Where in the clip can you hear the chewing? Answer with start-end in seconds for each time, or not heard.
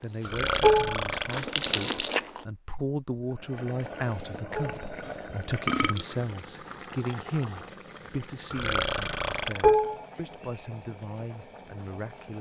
0.0-2.5.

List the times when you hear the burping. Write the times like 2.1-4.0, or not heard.
0.2-1.9, 5.0-6.2, 8.5-9.8.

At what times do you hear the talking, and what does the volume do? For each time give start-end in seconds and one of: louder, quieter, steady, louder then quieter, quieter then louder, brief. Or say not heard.
0.0-12.3 louder then quieter.